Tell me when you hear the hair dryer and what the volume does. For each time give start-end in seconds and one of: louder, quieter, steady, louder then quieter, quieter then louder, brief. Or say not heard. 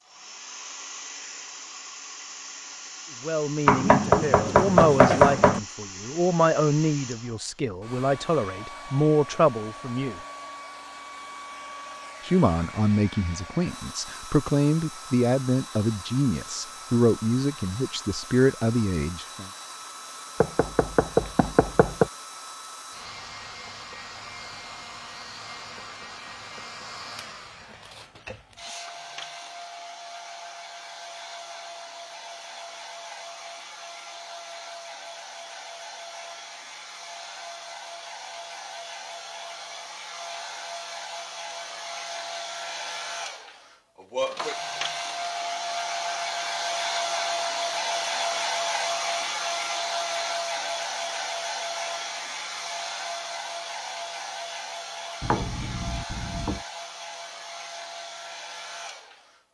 0.0-59.5 louder.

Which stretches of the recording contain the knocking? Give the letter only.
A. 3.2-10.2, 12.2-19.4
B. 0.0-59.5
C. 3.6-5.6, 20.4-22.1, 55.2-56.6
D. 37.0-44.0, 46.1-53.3
C.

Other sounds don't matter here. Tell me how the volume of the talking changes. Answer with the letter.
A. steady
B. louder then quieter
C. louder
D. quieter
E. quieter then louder
A.